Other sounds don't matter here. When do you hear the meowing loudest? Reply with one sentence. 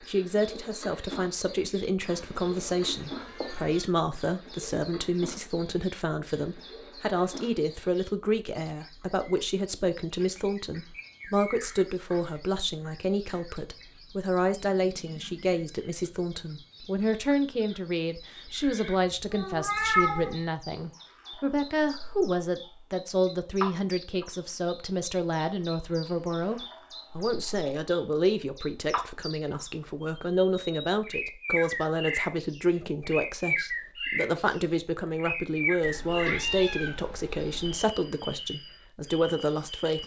The loudest moment of the meowing is at 20 seconds.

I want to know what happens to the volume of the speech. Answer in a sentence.
The loudness of the speech stays about the same.